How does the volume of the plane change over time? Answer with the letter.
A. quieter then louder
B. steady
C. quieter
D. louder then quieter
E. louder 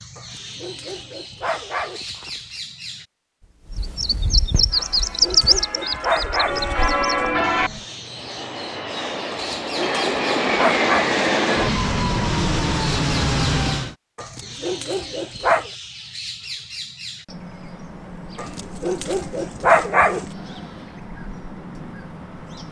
E.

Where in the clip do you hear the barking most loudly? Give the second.
20 s.